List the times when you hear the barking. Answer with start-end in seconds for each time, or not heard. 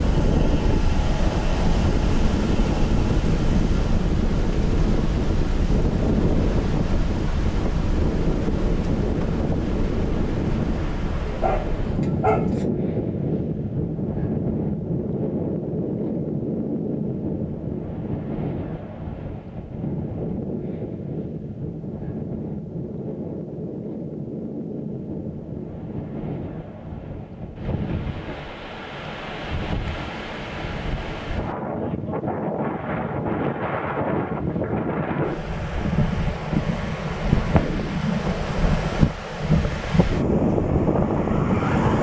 11.2-12.7.